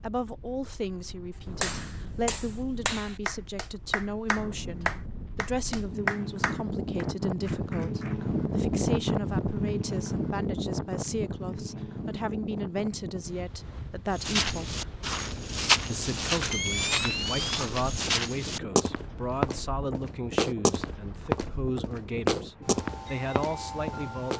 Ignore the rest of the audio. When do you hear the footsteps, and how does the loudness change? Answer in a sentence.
The footsteps can be heard from 14.1 to 24.3 s, at a steady volume.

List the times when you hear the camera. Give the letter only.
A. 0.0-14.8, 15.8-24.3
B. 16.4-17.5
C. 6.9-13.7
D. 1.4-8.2
B.